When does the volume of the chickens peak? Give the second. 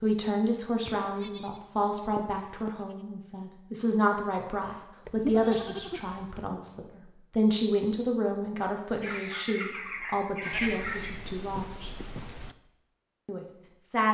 11 s.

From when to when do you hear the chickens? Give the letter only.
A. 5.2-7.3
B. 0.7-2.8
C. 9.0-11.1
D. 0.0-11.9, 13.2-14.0
C.